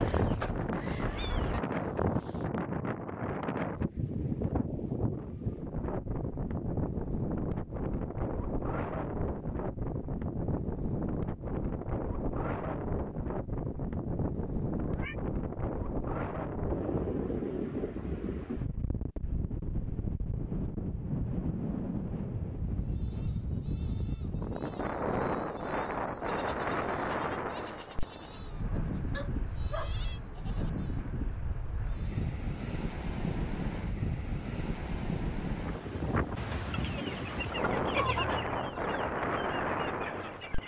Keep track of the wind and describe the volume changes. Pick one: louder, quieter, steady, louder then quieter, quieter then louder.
steady.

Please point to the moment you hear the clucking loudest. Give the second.
38 s.